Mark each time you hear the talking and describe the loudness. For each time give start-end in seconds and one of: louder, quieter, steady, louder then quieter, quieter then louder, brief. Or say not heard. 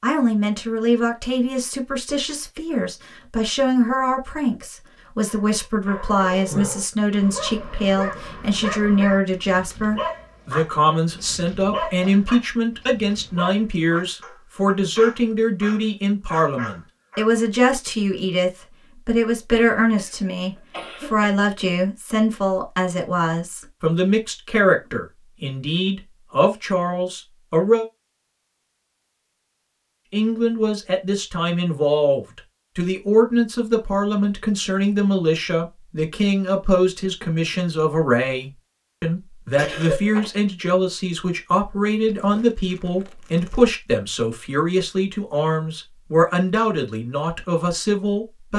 0.0-27.9 steady
30.1-48.5 steady.